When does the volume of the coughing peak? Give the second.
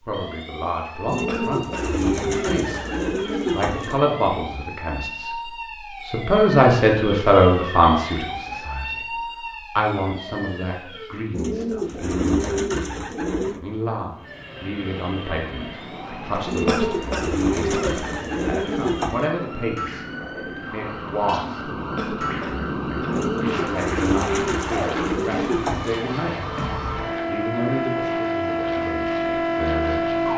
17 s.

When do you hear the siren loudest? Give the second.
30 s.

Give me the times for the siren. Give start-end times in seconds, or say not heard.
0.0-11.2, 14.2-30.3.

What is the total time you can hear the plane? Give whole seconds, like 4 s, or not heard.
16 s.